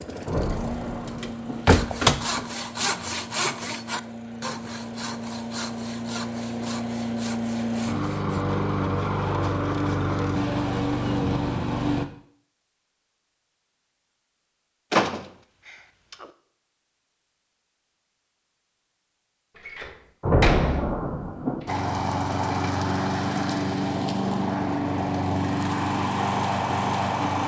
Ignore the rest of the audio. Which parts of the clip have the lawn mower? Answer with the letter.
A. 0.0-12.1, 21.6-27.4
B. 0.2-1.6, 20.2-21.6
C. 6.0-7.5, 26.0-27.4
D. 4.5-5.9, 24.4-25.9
A.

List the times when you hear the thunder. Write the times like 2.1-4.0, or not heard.
0.2-1.6, 20.2-21.6.